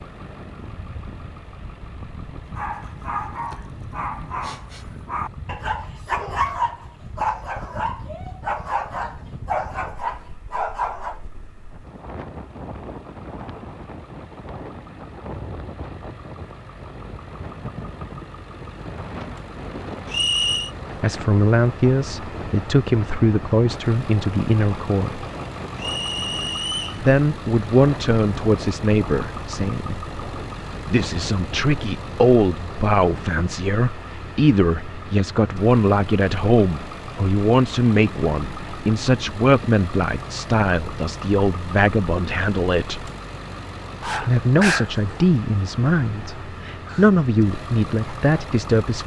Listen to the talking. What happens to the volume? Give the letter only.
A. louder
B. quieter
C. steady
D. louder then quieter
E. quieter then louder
C.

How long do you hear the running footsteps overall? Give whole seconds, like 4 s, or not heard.
not heard.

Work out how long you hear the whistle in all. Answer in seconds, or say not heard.
2 s.